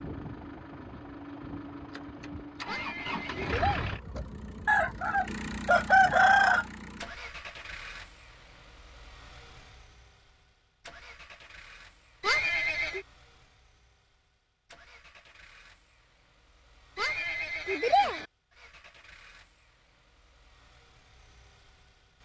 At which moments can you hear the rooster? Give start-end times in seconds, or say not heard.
4.7-6.7.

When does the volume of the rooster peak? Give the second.
6 s.